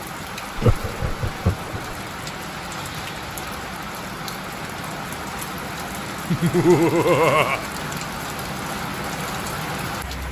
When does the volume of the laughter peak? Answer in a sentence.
The loudest moment of the laughter is at 7 seconds.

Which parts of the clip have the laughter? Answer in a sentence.
The laughter can be heard from 0.6 to 1.9 s and from 6.3 to 7.7 s.